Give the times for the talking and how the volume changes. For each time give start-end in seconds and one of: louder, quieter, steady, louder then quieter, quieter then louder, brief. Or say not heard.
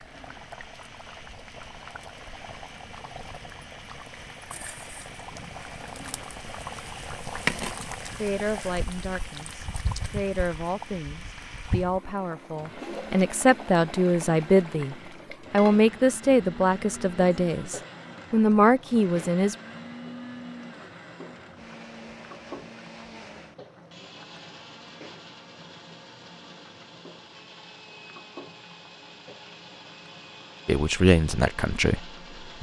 8.1-19.6 louder
30.6-32.5 brief.